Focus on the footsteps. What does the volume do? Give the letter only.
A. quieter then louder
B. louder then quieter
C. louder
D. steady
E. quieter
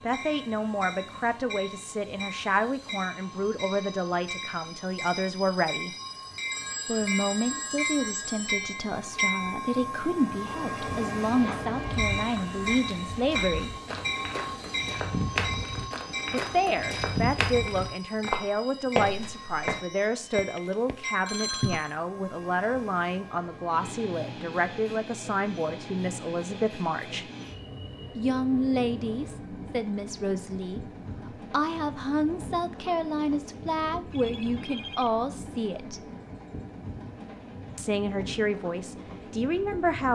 C.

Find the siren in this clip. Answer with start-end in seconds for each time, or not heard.
not heard.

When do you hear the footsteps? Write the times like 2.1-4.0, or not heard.
11.2-19.8.